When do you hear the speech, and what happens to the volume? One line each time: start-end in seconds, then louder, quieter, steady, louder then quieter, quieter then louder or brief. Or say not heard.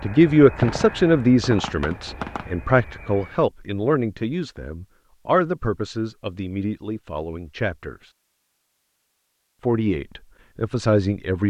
0.0-8.1 quieter
9.6-11.4 brief.